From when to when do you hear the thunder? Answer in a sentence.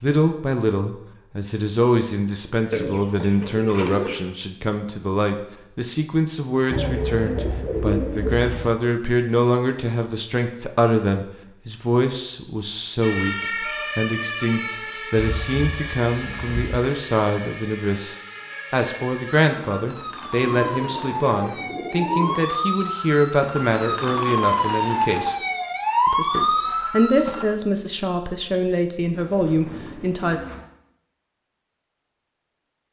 You can't hear the thunder here.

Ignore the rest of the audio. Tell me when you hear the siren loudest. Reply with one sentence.
The loudest moment of the siren is at 26 seconds.